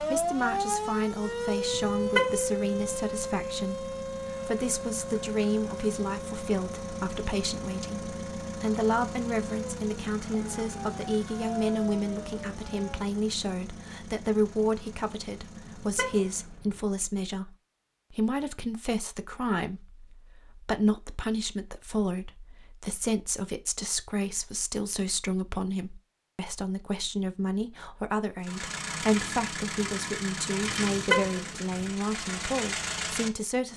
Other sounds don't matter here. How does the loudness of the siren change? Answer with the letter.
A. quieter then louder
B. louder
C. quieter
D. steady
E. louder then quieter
C.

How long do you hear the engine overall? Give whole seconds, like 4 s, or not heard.
22 s.